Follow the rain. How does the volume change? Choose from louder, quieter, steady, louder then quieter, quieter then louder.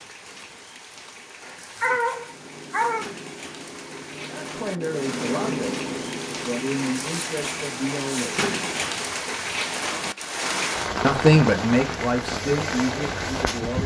louder.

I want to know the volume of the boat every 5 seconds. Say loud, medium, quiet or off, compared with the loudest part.
medium, loud, off.